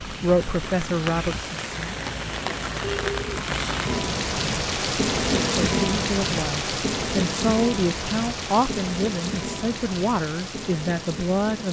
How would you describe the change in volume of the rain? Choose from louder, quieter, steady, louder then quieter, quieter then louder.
louder then quieter.